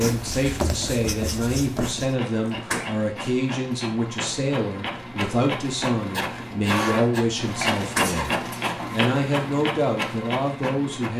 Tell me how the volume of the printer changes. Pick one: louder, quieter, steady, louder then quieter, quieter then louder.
louder.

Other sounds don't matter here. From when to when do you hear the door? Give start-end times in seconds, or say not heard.
2.4-2.9, 7.8-8.6.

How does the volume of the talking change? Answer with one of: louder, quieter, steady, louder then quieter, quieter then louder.
steady.